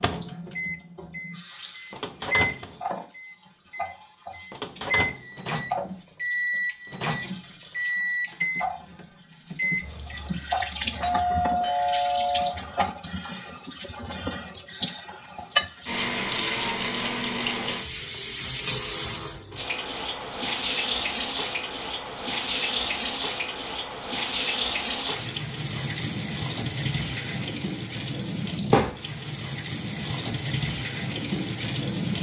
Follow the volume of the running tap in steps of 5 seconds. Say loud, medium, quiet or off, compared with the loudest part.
quiet, medium, loud, loud, loud, loud, loud.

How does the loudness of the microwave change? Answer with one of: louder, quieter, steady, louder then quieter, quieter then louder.
louder.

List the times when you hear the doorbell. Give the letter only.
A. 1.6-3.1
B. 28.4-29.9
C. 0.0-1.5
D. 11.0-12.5
D.